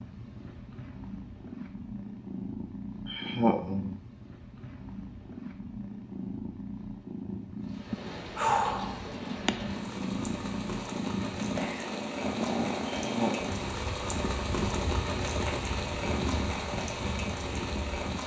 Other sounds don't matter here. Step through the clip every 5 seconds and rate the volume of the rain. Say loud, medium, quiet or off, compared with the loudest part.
off, medium, loud, loud.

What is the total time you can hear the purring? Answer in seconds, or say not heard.
18 s.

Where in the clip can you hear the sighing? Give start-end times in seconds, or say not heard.
3.0-4.0, 7.9-9.5, 12.9-13.6.